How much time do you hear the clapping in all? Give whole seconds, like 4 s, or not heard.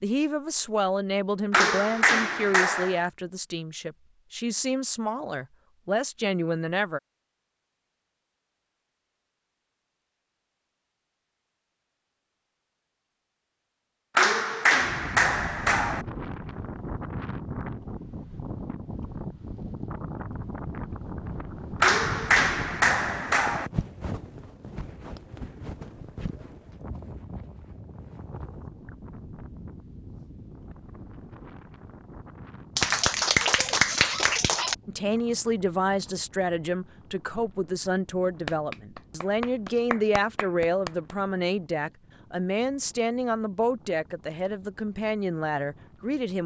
10 s.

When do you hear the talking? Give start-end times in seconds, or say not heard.
0.0-7.0, 34.9-46.4.